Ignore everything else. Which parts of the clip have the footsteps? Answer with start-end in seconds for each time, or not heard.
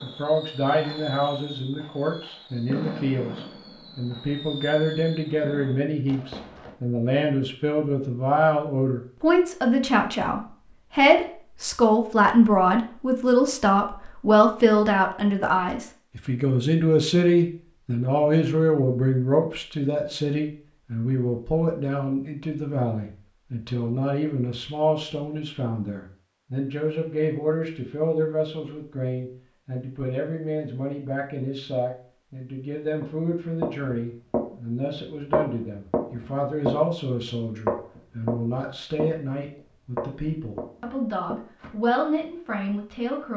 33.0-34.5, 35.3-39.1, 40.0-41.8.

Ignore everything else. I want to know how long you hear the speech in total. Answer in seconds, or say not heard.
43 s.